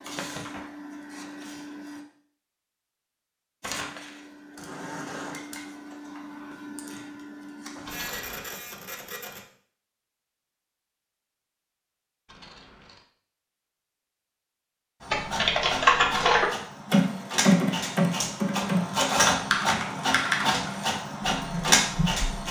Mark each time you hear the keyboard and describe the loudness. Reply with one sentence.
You can hear the keyboard from 15.1 to 22.4 s, getting quieter.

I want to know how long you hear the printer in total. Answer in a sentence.
The printer can be heard for 15 seconds in total.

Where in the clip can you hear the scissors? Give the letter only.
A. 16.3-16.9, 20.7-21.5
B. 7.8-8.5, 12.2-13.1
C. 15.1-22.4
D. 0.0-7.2
B.